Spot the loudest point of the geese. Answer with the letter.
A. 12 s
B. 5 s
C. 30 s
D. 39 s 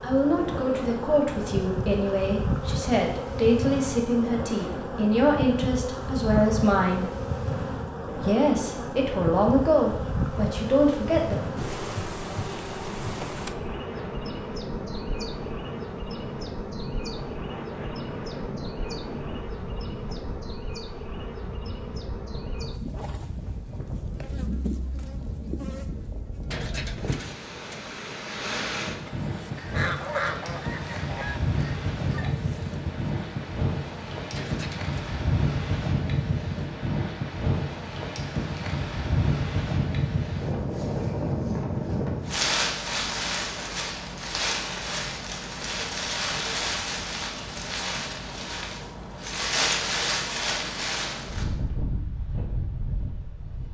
C.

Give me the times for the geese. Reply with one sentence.
The geese can be heard from 29.6 to 32.2 s.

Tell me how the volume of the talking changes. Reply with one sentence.
The loudness of the talking stays about the same.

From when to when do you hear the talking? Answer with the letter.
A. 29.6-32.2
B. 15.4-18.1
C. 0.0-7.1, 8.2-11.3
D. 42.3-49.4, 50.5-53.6
C.